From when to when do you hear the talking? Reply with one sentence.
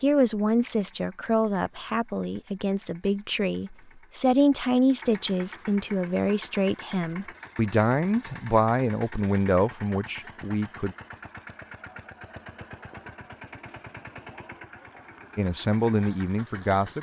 The talking can be heard from 0.0 to 10.9 s and from 15.3 to 16.9 s.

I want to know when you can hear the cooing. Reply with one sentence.
You can't hear the cooing here.